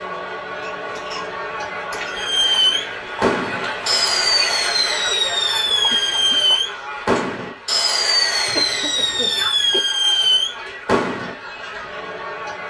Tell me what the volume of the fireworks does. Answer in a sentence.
The loudness of the fireworks stays about the same.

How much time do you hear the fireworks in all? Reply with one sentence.
The fireworks can be heard for 9 seconds in total.